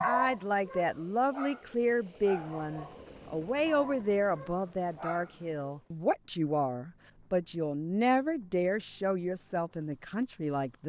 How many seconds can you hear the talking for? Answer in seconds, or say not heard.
11 s.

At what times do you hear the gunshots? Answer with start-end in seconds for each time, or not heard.
not heard.